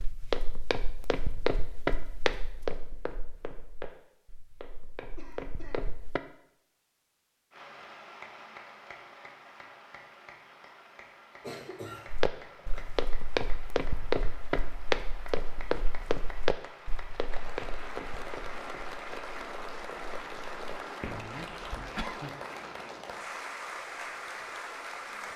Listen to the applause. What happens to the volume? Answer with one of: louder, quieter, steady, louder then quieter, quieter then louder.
louder.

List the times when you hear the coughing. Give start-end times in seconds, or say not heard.
5.2-5.9, 11.4-12.8, 21.1-22.4.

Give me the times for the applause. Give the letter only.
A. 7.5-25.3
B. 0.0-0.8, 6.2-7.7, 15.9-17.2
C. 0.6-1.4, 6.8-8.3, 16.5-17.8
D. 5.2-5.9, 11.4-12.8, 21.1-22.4
A.